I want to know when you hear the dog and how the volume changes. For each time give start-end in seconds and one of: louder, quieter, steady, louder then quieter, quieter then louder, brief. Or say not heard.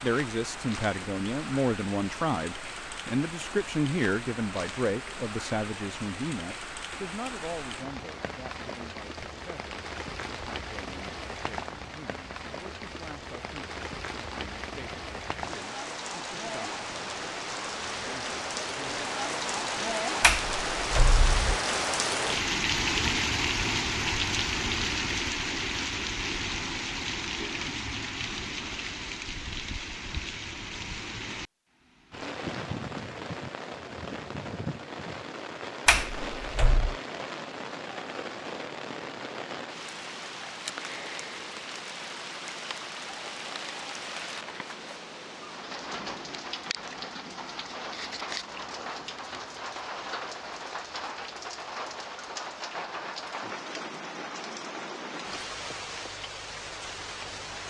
not heard.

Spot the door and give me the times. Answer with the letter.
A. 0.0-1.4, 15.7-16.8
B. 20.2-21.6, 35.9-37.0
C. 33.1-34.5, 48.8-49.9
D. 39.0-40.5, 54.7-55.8
B.